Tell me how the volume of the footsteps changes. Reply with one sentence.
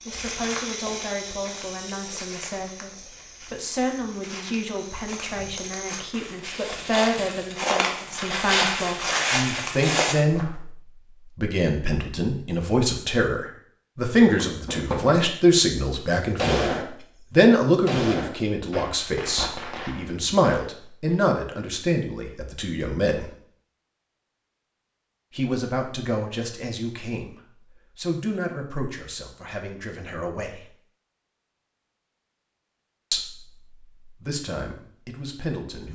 The volume of the footsteps goes down, then up.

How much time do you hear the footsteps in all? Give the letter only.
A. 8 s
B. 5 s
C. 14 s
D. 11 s
D.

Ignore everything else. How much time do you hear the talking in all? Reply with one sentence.
The talking can be heard for 31 seconds in total.